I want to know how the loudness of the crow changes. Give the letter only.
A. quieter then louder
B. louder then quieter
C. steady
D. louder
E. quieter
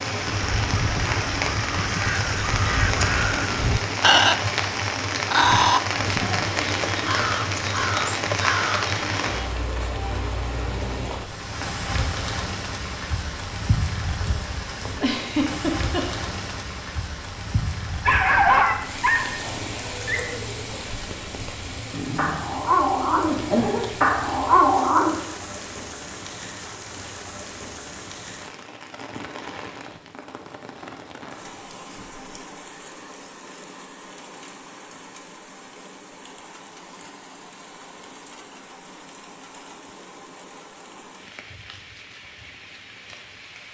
B.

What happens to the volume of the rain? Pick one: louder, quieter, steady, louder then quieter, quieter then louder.
quieter.